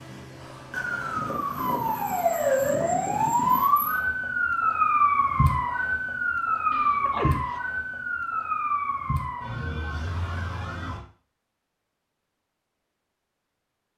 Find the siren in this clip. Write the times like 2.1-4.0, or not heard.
0.0-11.1.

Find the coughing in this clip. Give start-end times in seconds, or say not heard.
6.7-7.6.